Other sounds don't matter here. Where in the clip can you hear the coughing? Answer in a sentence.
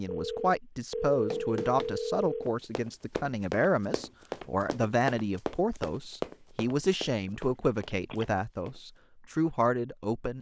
The coughing can't be heard in this clip.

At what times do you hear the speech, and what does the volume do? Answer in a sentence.
The speech can be heard from 0.0 to 10.3 s, at a steady volume.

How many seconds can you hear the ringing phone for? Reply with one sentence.
You can hear the ringing phone for 4 seconds altogether.